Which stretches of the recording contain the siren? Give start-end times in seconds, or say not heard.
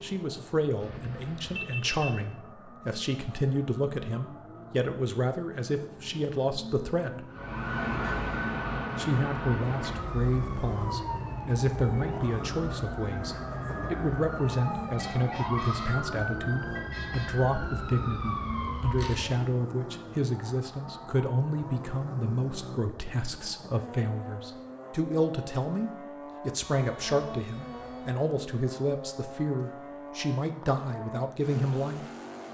7.3-19.5.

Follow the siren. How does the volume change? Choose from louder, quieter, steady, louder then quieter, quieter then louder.
quieter then louder.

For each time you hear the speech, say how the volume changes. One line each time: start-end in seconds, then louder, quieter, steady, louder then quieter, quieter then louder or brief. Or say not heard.
0.0-7.3 steady
8.9-32.0 steady.